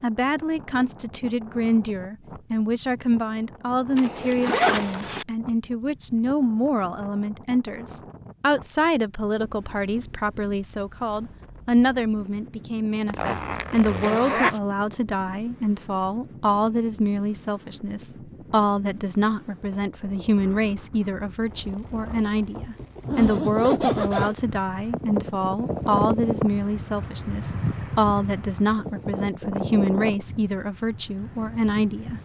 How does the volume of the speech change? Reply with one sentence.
The volume of the speech stays about the same.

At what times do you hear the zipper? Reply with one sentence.
The zipper can be heard from 4.0 to 5.2 s, from 13.1 to 14.6 s and from 22.6 to 24.4 s.